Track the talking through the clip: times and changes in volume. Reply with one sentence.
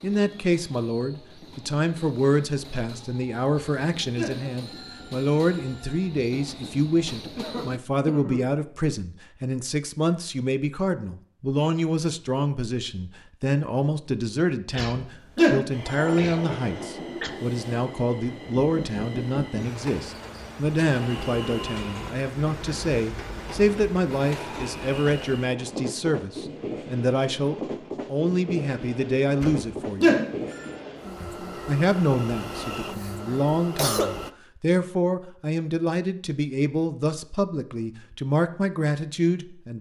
The talking can be heard from 0.0 to 30.1 s, at a steady volume; and from 31.2 to 39.7 s, at a steady volume.